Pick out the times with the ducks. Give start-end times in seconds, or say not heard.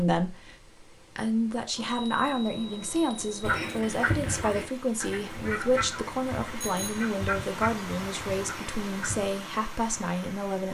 3.4-9.3.